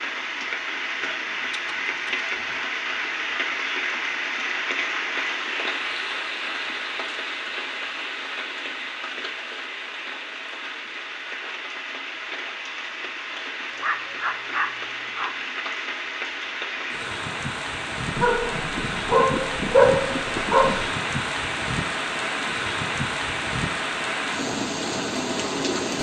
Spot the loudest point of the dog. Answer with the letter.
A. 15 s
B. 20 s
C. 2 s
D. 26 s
B.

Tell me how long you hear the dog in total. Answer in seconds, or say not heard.
6 s.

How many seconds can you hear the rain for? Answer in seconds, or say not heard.
26 s.